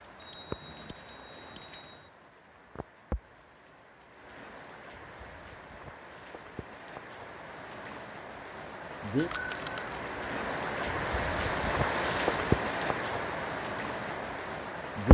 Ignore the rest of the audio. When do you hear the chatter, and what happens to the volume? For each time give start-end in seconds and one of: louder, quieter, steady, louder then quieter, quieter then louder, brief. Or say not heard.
not heard.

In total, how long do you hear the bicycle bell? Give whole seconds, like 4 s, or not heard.
3 s.